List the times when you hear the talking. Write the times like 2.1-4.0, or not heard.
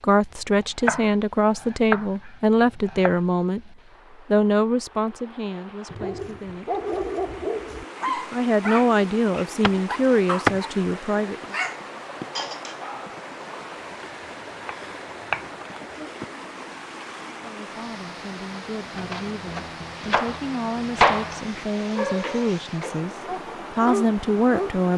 0.0-6.8, 8.3-11.6, 17.3-24.9.